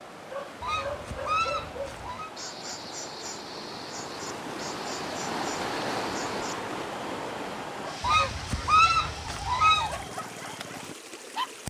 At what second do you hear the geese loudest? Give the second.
9 s.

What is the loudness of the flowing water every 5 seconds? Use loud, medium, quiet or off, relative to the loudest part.
medium, loud, medium.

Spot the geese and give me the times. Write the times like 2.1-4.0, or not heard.
0.6-2.3, 8.0-10.1.